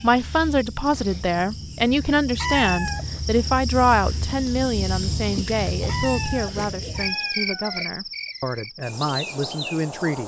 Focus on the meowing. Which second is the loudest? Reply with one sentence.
The volume of the meowing peaks at 3 seconds.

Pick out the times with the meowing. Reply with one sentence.
The meowing can be heard from 2.4 to 3.0 s and from 5.8 to 7.9 s.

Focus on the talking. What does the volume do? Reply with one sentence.
The loudness of the talking goes down.